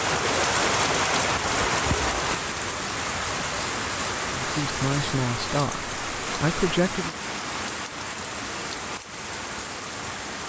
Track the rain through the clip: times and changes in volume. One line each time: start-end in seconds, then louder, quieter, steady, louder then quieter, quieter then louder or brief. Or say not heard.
0.0-10.4 quieter.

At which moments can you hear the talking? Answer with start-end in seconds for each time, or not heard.
4.3-7.2.